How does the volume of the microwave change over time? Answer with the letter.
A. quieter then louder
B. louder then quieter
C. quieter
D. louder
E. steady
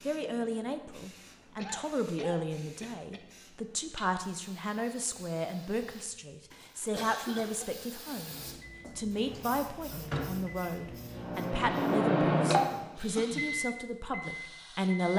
B.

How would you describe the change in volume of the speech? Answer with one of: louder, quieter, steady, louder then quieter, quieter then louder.
steady.